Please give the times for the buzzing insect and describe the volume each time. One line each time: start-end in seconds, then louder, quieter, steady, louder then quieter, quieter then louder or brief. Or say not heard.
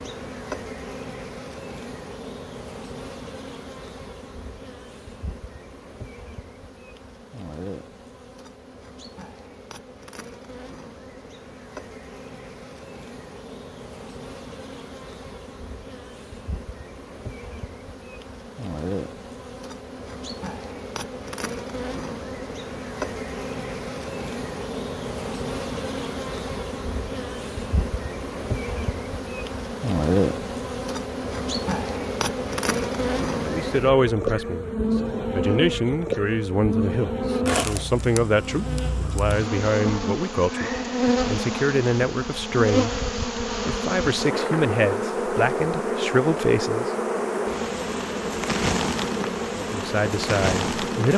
0.0-51.1 louder.